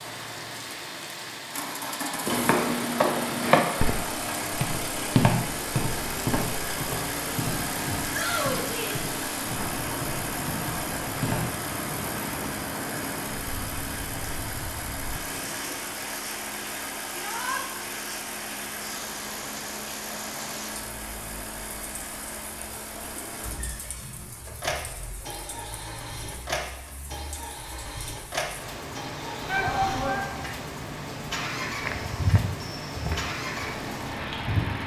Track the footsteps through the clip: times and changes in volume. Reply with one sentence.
You can hear the footsteps from 2.2 to 11.4 s, getting quieter; and briefly from 31.9 to 34.8 s.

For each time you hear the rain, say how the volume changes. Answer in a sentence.
The rain can be heard from 0.0 to 34.8 s, getting quieter then louder.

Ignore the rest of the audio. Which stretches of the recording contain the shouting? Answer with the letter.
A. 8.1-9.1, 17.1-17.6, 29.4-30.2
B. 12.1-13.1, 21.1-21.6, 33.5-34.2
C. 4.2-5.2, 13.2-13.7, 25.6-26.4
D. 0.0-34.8
A.